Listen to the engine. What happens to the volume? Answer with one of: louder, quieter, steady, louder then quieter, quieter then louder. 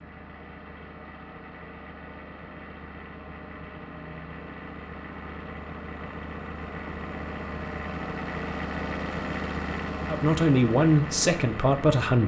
louder.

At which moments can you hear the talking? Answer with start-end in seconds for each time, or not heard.
10.1-12.2.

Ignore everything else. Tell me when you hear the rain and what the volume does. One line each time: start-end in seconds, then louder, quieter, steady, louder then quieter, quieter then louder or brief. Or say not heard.
not heard.